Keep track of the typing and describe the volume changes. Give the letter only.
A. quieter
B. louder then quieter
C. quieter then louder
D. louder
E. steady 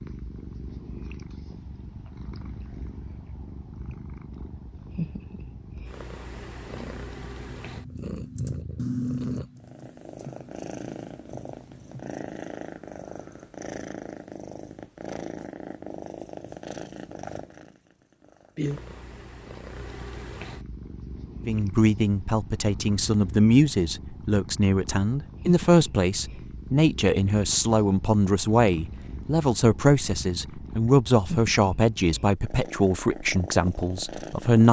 B.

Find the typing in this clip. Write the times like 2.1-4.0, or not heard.
6.8-12.1.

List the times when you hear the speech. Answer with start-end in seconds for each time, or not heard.
21.4-34.6.